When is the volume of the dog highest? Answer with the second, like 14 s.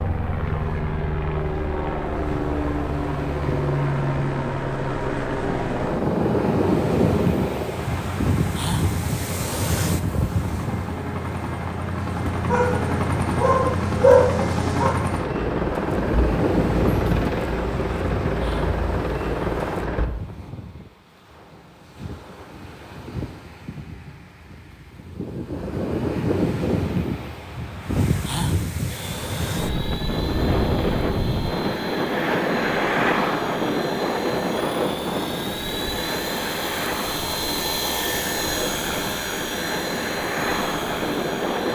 14 s.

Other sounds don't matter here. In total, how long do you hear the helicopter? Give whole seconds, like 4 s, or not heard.
33 s.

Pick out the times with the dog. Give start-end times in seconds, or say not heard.
12.4-14.9.